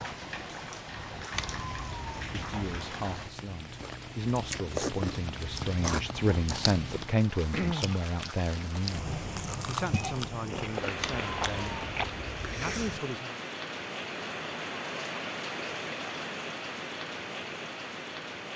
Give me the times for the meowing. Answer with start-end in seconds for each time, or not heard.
1.3-2.5, 10.9-13.0.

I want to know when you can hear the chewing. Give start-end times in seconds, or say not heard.
3.8-12.1.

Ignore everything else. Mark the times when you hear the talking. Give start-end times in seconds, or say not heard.
2.3-11.8, 12.4-13.3.